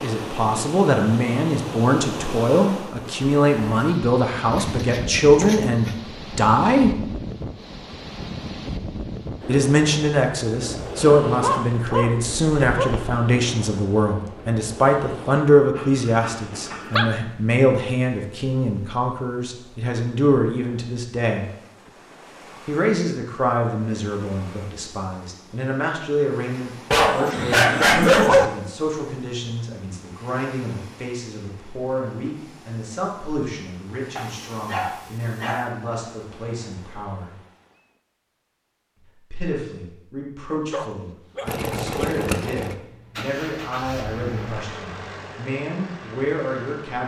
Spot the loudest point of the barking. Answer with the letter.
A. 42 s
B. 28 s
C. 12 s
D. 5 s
B.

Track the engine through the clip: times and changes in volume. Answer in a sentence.
The engine can be heard from 41.5 to 47.0 s, getting quieter.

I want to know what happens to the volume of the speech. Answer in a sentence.
The loudness of the speech goes down.